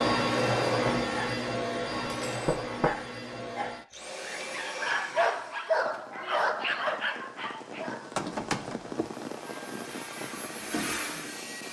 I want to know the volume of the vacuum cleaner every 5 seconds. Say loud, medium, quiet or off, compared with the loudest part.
loud, quiet, medium.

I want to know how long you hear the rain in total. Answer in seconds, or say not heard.
6 s.